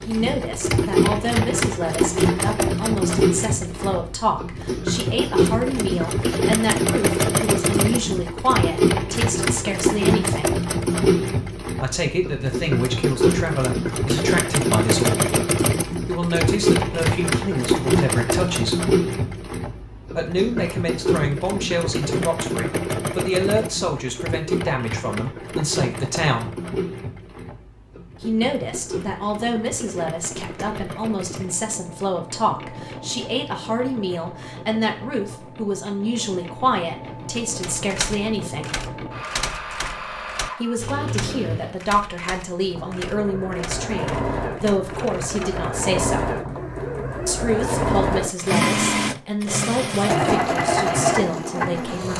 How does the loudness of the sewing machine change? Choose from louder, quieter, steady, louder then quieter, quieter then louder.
quieter then louder.